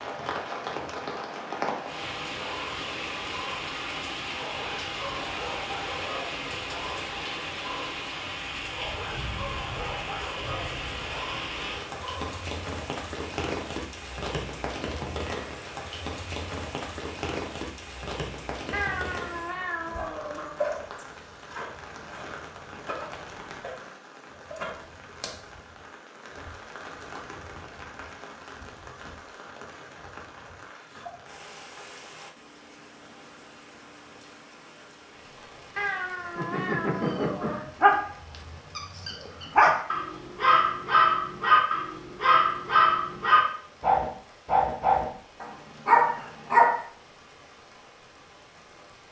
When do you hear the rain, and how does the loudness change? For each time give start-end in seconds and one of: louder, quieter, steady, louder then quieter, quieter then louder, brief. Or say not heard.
0.0-49.0 quieter.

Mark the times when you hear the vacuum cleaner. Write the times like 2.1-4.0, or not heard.
not heard.